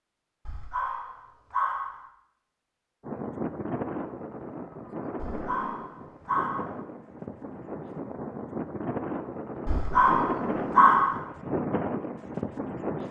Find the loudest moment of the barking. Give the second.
11 s.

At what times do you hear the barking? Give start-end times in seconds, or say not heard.
0.5-2.0, 5.2-6.8, 9.7-11.2.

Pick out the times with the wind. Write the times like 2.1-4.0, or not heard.
3.0-13.0.